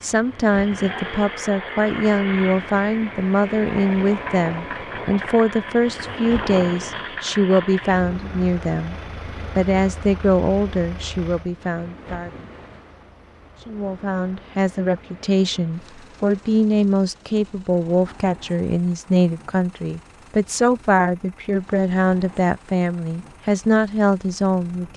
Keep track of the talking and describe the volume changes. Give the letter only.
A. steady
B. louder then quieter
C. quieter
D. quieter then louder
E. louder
A.